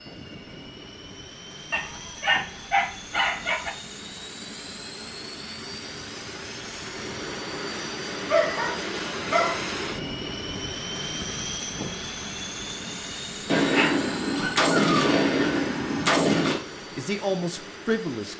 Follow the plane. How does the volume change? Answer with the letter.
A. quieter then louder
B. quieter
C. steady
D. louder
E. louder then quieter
E.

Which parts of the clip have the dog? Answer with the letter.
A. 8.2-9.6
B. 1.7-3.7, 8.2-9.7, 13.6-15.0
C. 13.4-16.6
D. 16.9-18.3
B.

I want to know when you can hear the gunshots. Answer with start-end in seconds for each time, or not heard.
13.4-16.6.